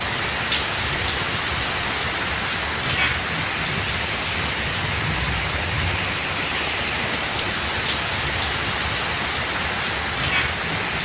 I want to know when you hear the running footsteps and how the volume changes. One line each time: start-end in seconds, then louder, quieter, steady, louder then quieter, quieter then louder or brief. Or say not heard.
not heard.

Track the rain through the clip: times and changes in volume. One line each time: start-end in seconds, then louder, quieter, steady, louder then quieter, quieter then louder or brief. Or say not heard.
0.0-10.9 steady.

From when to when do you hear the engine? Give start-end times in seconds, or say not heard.
0.0-10.9.